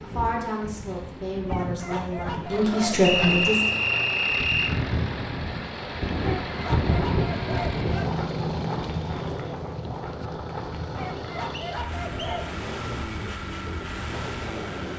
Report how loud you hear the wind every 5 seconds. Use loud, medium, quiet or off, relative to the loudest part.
medium, loud, medium.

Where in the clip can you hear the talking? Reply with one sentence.
You can hear the talking from 0.0 to 3.8 s.